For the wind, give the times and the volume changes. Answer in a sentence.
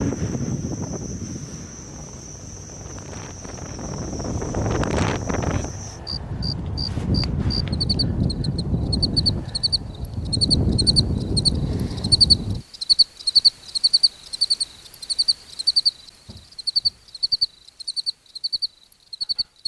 You can hear the wind from 0.0 to 12.7 s, getting louder.